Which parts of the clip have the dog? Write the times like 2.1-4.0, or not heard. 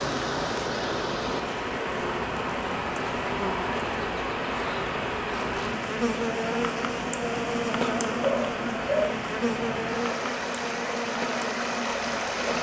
8.2-9.2.